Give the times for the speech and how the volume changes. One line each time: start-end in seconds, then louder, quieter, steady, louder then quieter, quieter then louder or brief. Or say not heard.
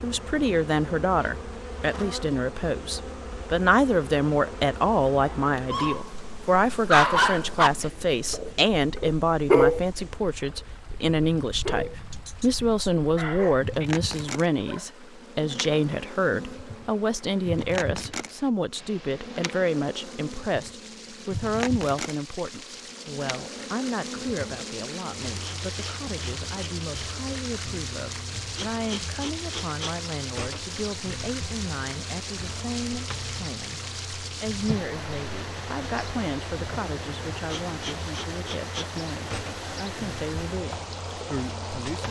0.0-42.0 quieter.